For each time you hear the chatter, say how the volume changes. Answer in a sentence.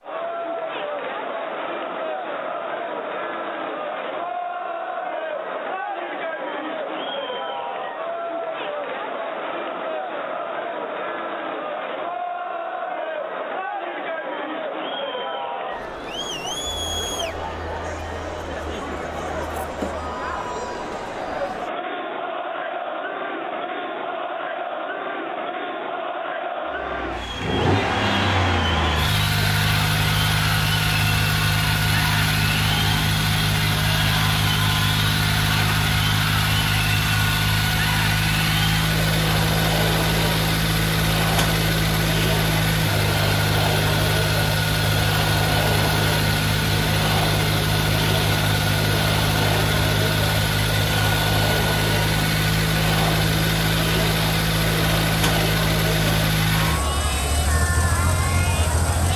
The chatter can be heard from 0.0 to 59.1 s, at a steady volume.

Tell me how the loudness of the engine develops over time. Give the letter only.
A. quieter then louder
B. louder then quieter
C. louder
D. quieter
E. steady
E.